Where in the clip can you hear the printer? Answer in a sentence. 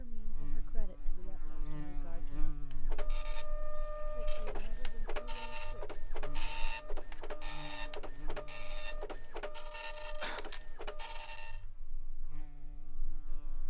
The printer can be heard from 2.7 to 11.7 s.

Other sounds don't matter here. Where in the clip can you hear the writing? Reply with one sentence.
You can't hear the writing here.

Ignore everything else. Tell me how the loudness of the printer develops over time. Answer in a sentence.
The volume of the printer stays about the same.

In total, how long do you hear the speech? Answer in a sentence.
The speech can be heard for 4 seconds in total.